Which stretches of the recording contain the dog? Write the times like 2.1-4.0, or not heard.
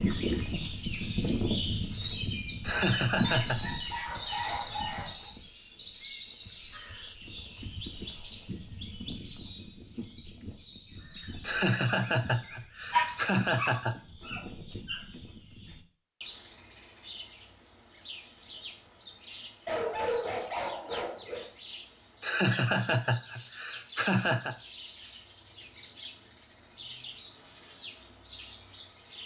2.7-5.3, 12.9-15.0, 19.6-21.4.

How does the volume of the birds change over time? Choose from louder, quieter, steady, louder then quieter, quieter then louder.
quieter.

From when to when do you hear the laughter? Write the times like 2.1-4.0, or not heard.
2.6-3.6, 11.4-14.0, 22.2-24.6.